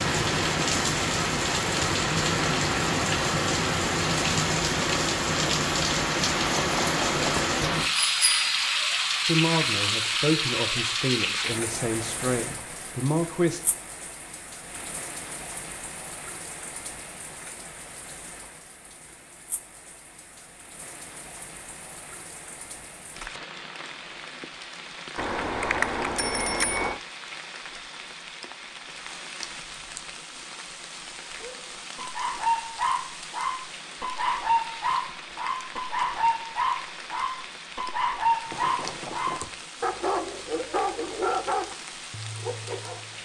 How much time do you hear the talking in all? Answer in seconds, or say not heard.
4 s.